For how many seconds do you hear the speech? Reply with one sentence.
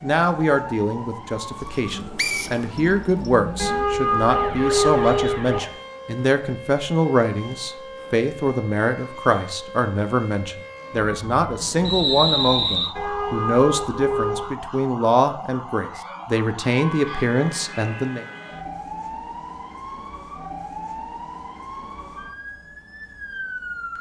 You can hear the speech for 18 seconds altogether.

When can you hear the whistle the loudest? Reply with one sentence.
The loudest moment of the whistle is at 12 seconds.